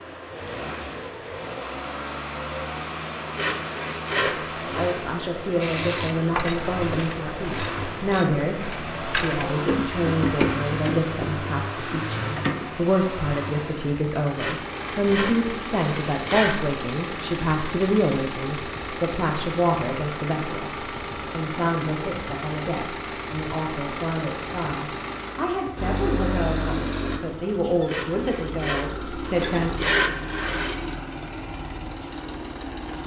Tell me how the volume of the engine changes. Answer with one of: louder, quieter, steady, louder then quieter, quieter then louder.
steady.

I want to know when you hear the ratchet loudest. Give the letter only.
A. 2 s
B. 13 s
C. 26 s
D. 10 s
D.